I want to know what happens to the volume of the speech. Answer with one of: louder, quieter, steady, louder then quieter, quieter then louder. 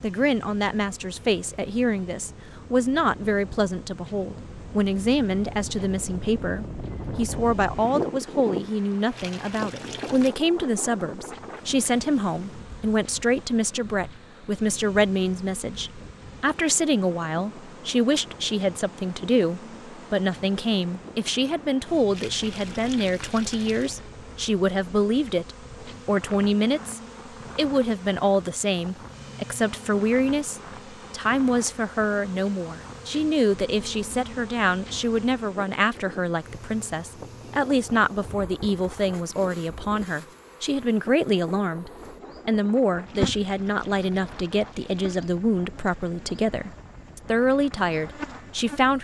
steady.